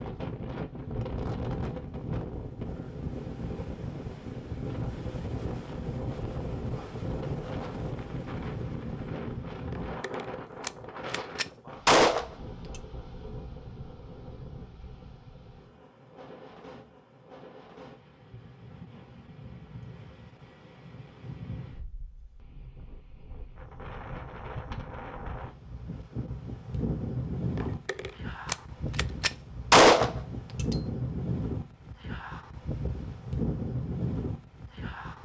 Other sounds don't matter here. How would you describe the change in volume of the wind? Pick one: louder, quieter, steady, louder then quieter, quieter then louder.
quieter then louder.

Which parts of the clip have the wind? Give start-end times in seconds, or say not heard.
0.0-35.2.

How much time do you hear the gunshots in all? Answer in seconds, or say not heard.
6 s.